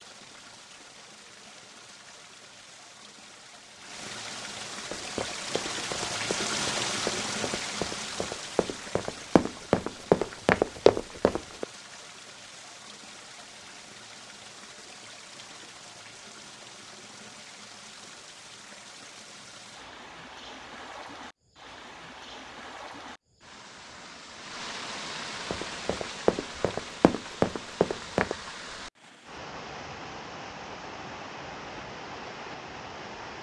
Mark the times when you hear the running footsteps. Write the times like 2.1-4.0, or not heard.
4.9-11.7, 25.5-28.4.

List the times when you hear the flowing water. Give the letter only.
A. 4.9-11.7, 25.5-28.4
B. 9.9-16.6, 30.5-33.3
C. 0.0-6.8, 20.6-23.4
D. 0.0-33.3
D.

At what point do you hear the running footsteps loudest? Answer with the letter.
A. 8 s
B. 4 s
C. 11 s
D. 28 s
C.